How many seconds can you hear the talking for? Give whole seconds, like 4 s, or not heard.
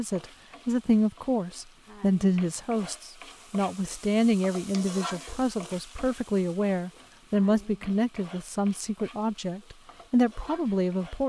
11 s.